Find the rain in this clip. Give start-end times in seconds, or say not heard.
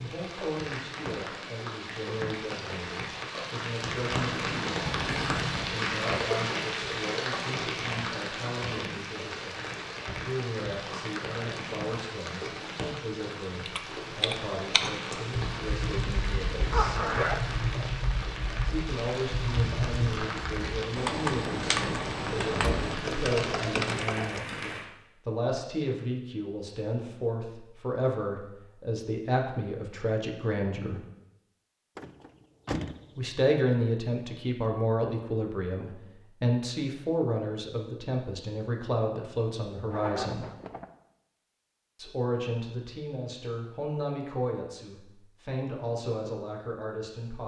0.0-24.9.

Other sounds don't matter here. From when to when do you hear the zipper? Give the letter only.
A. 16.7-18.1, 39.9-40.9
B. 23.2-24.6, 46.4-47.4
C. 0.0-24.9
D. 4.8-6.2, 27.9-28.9
A.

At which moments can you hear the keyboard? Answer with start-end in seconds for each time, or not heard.
13.7-24.4.